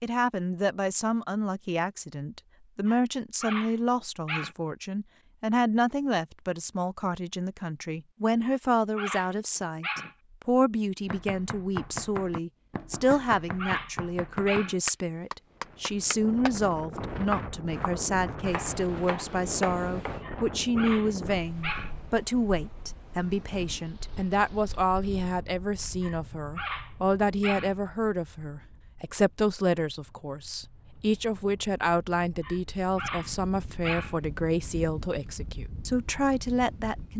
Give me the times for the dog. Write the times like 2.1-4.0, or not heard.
2.9-4.5, 8.4-10.2, 13.1-14.8, 20.2-21.9, 26.0-27.8, 32.4-34.1.